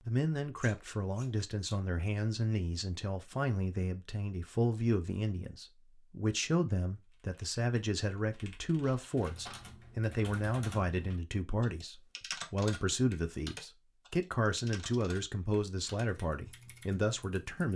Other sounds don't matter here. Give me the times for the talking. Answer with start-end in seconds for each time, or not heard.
0.1-17.7.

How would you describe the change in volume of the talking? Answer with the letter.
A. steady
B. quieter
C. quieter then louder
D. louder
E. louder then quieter
A.